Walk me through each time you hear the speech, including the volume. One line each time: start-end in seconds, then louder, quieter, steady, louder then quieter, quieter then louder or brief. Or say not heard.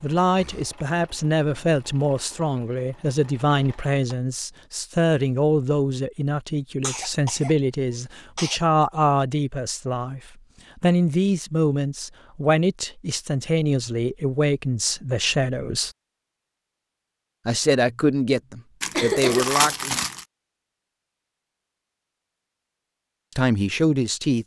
0.0-15.9 steady
17.4-20.0 brief
23.4-24.4 brief.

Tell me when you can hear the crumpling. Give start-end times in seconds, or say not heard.
18.8-20.2.